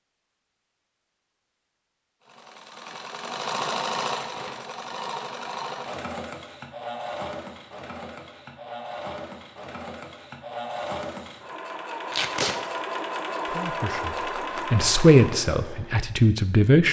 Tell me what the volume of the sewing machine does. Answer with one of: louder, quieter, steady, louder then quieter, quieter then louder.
quieter then louder.